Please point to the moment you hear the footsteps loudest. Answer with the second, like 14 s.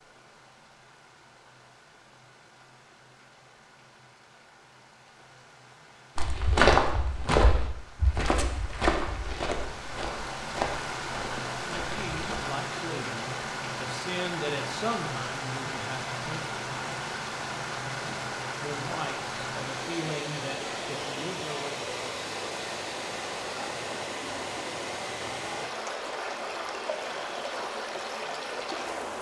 7 s.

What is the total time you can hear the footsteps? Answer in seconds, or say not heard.
6 s.